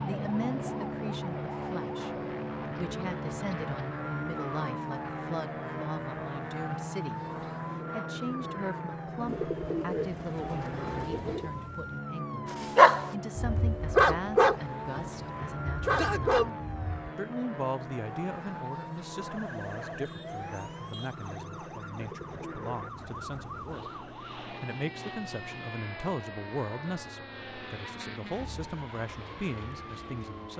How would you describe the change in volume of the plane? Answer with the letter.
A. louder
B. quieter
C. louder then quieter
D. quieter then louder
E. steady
B.